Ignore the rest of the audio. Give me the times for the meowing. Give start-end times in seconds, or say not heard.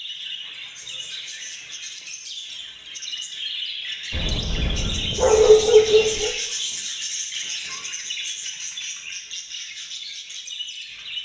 not heard.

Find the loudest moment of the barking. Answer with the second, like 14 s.
6 s.